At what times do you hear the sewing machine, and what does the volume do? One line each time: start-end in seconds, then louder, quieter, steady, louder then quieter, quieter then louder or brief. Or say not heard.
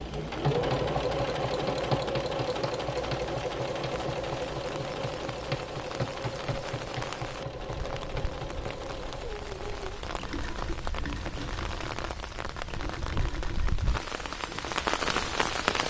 0.0-15.7 quieter.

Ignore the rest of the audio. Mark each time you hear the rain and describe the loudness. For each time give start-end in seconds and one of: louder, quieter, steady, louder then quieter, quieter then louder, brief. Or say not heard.
0.0-15.8 louder.